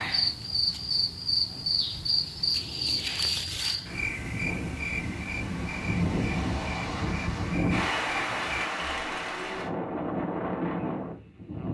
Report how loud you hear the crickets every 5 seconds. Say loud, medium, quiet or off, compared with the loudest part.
loud, medium, off.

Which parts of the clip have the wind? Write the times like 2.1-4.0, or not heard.
3.8-11.6.